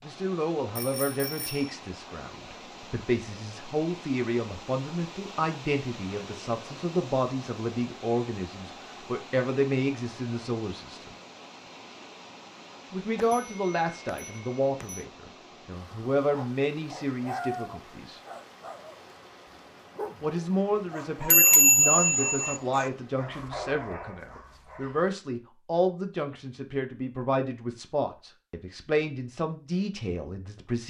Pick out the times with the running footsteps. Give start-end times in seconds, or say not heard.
not heard.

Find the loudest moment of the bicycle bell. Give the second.
22 s.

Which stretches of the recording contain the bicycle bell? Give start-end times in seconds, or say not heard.
0.8-1.6, 13.2-15.1, 21.3-22.6.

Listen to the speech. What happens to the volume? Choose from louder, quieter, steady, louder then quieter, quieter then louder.
steady.